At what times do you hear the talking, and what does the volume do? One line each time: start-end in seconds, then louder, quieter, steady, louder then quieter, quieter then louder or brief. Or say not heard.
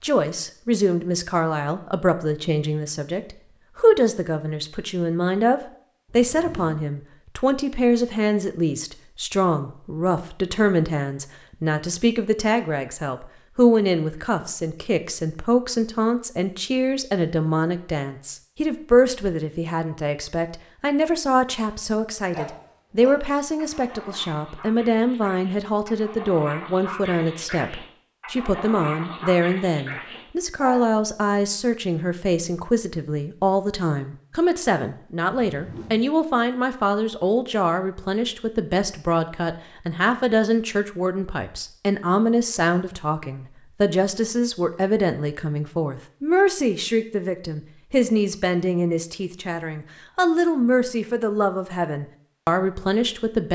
0.0-53.5 steady.